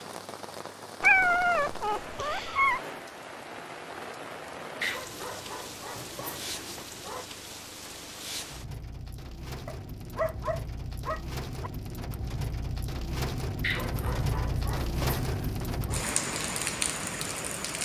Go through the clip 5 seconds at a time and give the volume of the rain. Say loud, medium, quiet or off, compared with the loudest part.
medium, medium, loud, loud.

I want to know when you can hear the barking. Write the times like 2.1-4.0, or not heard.
1.0-2.8, 4.8-7.2, 9.7-11.7, 13.6-16.1.